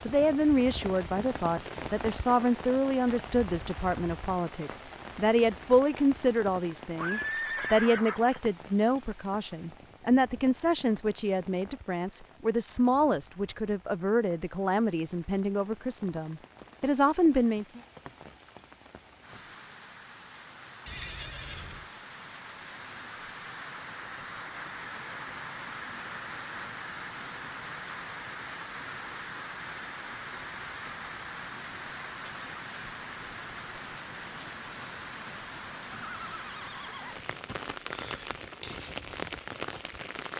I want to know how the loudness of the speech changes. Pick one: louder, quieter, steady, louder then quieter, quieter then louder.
steady.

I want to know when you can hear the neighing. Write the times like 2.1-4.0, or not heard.
7.0-8.4, 20.9-21.9, 36.1-37.2.